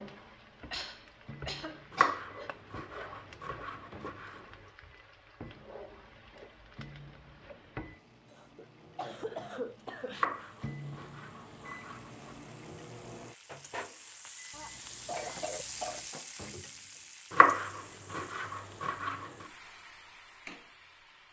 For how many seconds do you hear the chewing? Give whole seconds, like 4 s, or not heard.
not heard.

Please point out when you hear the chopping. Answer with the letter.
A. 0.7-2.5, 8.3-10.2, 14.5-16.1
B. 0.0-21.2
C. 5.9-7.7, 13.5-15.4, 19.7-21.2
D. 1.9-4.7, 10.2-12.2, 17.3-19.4
D.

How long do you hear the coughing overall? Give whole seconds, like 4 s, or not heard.
5 s.